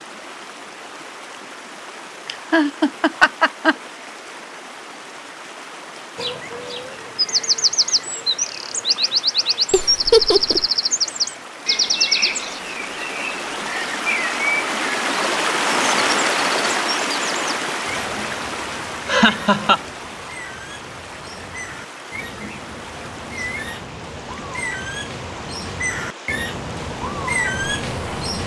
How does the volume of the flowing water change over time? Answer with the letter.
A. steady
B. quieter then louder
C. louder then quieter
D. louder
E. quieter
C.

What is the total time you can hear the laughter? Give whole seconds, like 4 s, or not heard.
3 s.